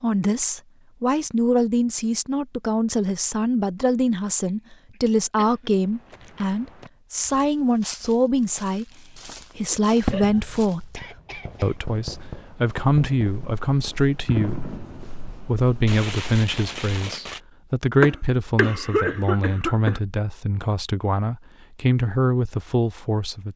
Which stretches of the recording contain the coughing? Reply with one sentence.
The coughing can be heard from 4.5 to 5.7 s, from 10.1 to 11.8 s and from 18.0 to 20.0 s.